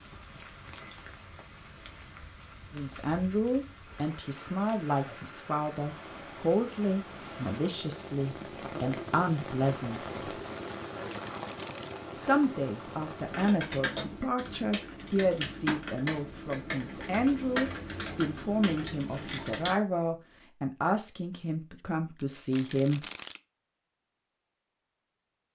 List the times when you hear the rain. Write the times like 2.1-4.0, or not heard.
0.0-13.4.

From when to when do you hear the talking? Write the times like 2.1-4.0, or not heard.
2.7-10.4, 12.2-23.1.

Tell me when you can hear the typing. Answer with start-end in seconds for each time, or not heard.
13.2-19.8.